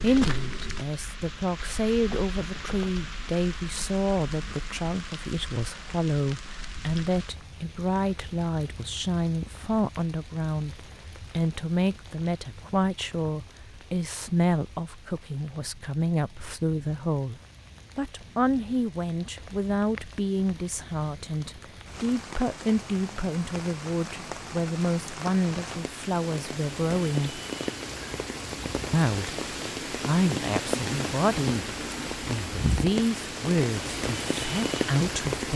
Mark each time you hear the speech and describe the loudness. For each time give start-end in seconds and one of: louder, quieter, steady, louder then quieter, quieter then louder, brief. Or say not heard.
0.0-17.4 steady
17.9-27.4 steady
28.9-35.5 quieter then louder.